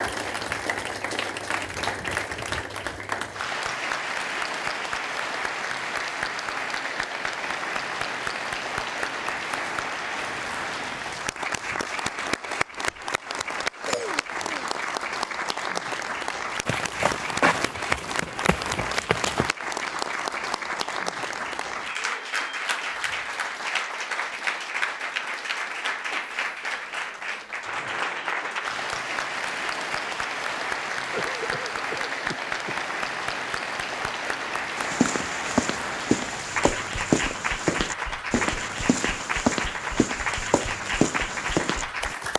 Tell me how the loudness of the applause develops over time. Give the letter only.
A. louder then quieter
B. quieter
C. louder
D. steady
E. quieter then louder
D.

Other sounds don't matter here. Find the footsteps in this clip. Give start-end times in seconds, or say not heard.
16.6-19.5, 34.8-42.1.